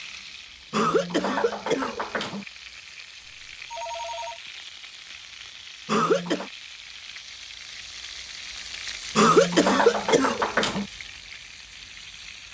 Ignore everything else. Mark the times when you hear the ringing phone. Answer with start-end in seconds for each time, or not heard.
3.2-4.4.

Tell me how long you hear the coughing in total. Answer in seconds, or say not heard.
4 s.